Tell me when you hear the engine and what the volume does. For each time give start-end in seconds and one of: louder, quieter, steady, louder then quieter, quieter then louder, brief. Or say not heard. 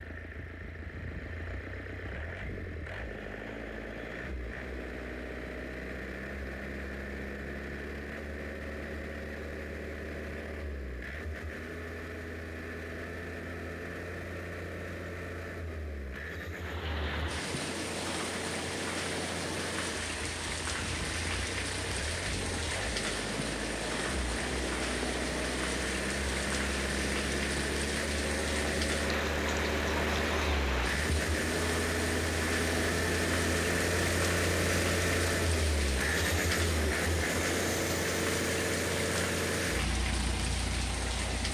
0.0-41.4 louder.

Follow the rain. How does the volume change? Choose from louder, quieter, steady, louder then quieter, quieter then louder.
steady.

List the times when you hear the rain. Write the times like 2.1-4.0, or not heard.
16.6-41.4.